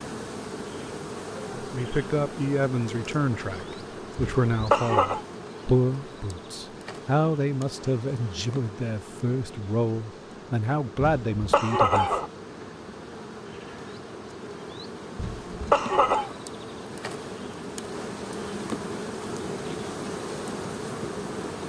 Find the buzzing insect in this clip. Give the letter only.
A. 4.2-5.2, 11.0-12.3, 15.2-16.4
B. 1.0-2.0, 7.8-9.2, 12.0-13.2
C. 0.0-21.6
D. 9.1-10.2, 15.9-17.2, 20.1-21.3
C.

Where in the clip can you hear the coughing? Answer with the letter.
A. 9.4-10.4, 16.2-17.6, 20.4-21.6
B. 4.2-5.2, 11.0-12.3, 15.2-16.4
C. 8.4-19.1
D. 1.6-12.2
B.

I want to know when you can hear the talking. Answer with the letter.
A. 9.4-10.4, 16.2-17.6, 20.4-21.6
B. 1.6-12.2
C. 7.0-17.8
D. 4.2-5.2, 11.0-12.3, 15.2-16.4
B.